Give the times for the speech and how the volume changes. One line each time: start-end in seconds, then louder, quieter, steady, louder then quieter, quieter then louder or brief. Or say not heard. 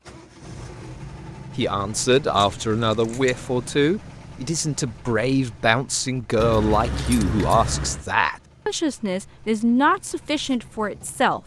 1.6-11.4 steady.